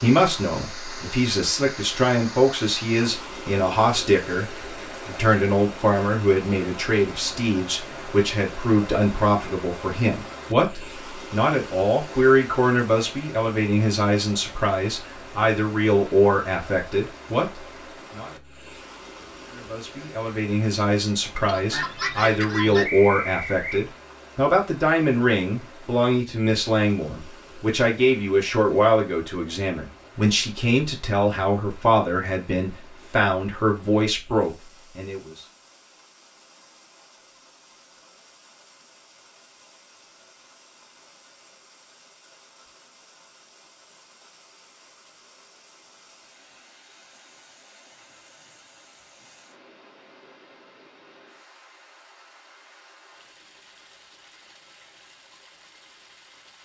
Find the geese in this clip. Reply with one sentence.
The geese can be heard from 21.4 to 22.9 s.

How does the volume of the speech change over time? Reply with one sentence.
The loudness of the speech stays about the same.